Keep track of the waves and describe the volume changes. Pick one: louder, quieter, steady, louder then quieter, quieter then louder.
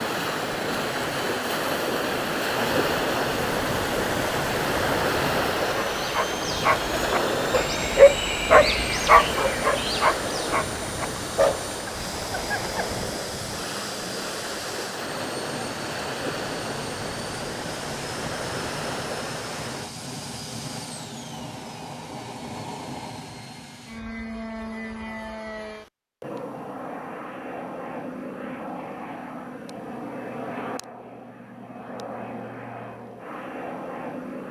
quieter.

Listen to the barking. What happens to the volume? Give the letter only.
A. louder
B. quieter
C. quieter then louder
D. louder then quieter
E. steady
D.